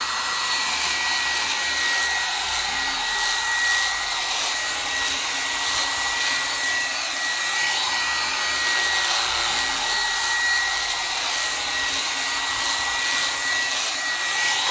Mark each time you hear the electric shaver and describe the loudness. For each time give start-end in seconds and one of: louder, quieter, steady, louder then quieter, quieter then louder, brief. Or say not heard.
0.0-14.6 steady.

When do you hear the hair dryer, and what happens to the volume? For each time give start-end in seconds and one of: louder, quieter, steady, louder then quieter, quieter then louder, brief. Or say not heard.
0.0-14.6 steady.